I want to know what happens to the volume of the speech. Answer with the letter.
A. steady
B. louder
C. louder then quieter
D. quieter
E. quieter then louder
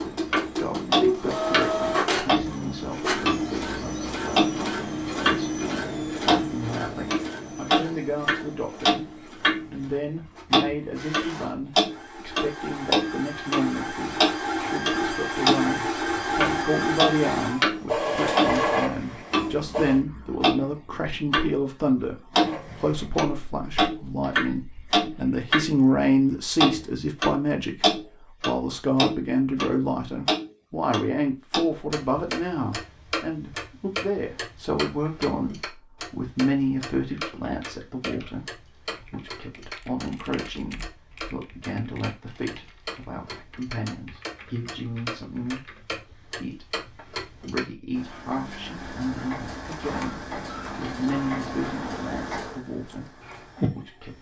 C.